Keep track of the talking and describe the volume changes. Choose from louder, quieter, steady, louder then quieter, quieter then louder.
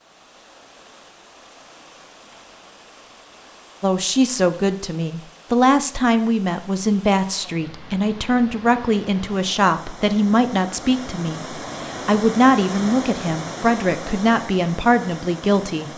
steady.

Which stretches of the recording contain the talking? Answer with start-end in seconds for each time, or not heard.
3.8-15.9.